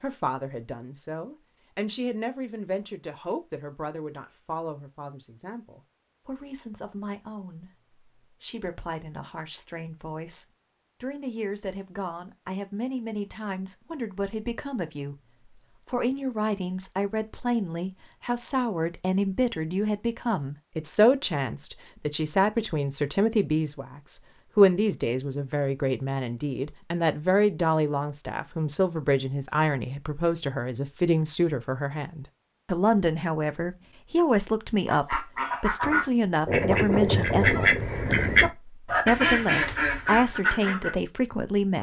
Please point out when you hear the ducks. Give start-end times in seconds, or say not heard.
34.9-40.9.